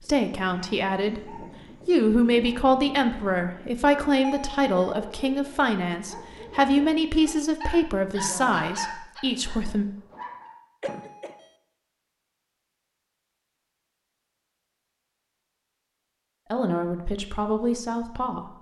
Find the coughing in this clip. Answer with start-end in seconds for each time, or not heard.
10.8-11.3.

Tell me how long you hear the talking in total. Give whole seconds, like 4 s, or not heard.
12 s.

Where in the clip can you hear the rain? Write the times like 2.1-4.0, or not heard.
not heard.